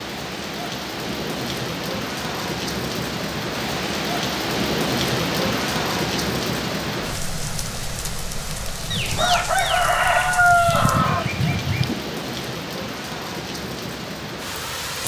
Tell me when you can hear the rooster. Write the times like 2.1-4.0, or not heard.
8.9-11.9.